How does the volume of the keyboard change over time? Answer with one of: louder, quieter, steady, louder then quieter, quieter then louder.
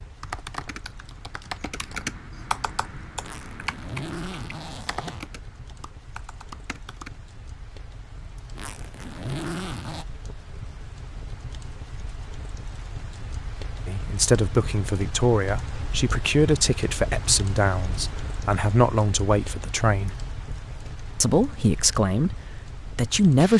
louder then quieter.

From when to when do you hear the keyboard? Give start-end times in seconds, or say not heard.
0.2-7.2.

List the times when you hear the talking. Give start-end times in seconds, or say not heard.
13.8-20.2, 21.2-23.5.